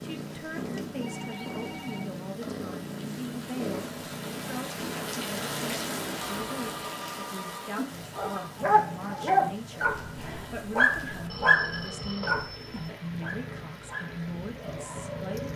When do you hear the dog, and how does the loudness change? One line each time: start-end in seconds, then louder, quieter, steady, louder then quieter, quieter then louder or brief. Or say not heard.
8.2-15.5 quieter.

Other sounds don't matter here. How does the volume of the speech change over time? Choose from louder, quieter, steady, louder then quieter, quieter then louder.
steady.